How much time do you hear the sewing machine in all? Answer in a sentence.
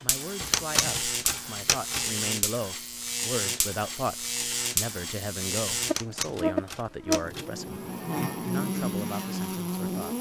The sewing machine can't be heard in this clip.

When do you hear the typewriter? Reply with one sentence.
The typewriter can be heard from 0.4 to 2.1 s and from 5.8 to 7.5 s.